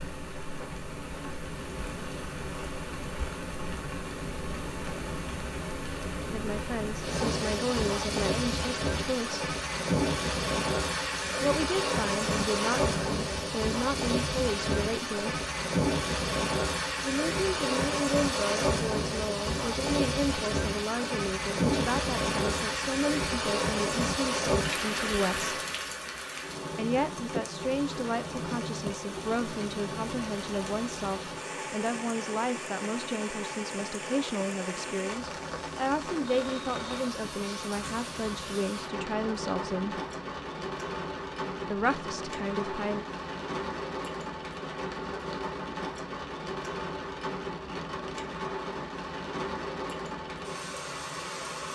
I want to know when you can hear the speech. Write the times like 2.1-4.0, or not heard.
6.3-9.4, 11.4-15.4, 17.0-25.6, 26.8-40.0, 41.7-43.0.